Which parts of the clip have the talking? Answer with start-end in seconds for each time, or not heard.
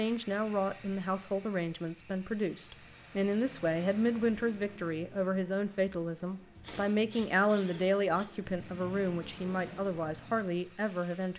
0.0-11.3.